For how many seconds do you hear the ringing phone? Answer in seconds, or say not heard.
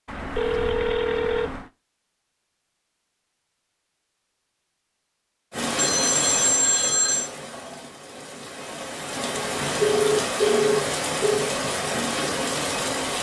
5 s.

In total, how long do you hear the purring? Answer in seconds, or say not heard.
not heard.